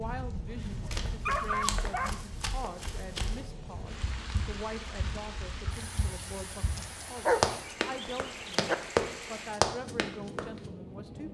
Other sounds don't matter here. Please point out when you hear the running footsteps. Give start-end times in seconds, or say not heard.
0.6-10.4.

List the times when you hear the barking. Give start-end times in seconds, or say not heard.
0.5-2.1, 6.8-8.8.